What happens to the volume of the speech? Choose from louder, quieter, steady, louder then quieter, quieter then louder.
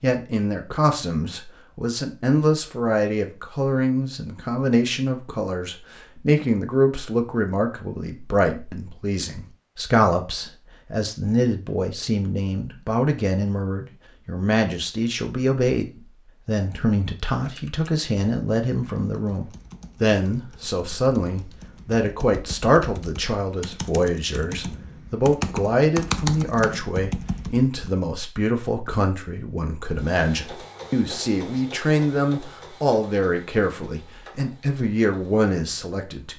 steady.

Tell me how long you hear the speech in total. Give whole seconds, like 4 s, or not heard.
36 s.